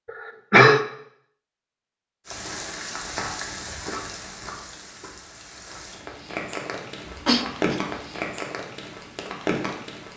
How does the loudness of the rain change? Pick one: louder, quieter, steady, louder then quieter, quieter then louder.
quieter then louder.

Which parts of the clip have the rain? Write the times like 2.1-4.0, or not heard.
2.2-10.1.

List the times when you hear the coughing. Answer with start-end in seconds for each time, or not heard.
0.1-0.8, 7.0-7.8.